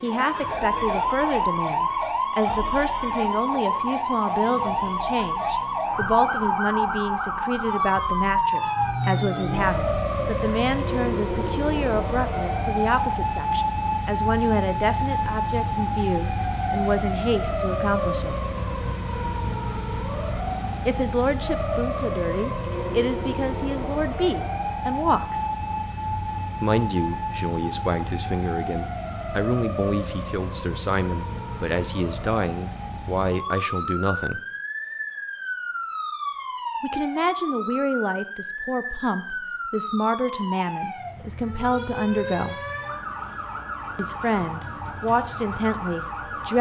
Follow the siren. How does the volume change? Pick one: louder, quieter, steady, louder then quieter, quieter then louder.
quieter.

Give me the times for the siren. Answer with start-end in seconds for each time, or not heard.
0.0-46.5.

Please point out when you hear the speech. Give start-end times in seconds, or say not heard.
0.0-18.4, 20.9-25.4, 26.6-34.4, 36.8-42.6, 44.0-46.5.